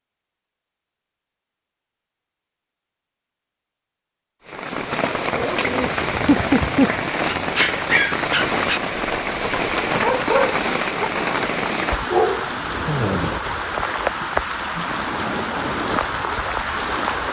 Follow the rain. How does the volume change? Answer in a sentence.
The loudness of the rain stays about the same.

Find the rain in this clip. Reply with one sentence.
You can hear the rain from 4.5 to 17.2 s.